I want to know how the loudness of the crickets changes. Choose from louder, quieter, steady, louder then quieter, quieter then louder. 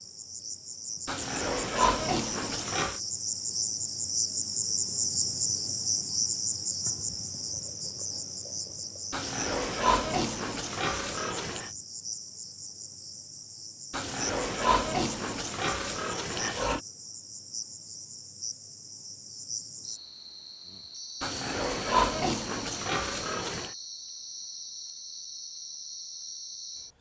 quieter.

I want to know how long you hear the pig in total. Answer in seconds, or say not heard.
10 s.